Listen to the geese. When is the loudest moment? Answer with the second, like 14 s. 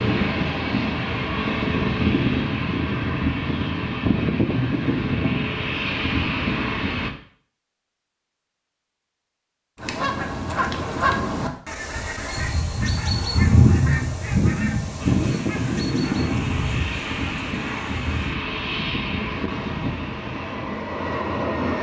14 s.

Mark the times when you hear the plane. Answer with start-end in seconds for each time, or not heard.
0.0-7.1, 14.9-21.7.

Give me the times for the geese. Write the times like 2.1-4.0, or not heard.
9.8-18.4.